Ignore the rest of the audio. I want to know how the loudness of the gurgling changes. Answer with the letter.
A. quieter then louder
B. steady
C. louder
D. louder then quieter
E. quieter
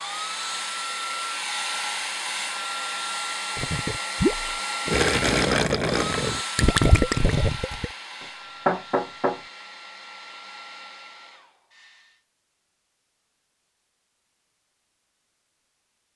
B.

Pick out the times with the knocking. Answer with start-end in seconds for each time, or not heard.
8.2-9.4.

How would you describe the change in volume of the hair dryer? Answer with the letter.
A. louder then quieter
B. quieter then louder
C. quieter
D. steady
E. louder
C.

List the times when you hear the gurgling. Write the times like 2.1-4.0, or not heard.
3.5-7.9.